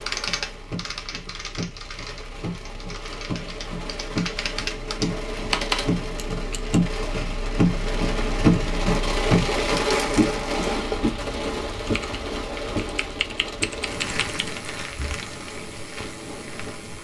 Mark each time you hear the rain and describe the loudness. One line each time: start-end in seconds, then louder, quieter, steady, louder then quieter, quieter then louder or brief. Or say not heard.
0.0-16.9 louder then quieter.